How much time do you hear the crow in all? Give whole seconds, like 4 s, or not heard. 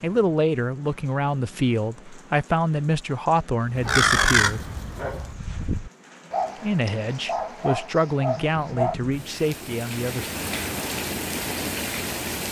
2 s.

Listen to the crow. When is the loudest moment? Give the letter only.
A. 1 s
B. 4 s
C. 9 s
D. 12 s
B.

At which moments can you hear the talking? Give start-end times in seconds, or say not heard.
0.0-4.6, 6.5-10.3.